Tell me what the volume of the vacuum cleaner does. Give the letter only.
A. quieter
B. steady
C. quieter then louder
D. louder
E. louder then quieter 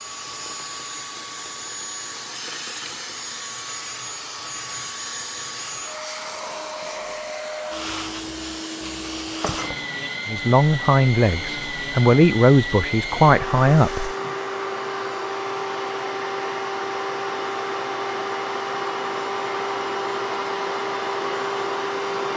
D.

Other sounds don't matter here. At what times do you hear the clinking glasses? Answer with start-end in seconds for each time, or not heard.
9.4-10.1.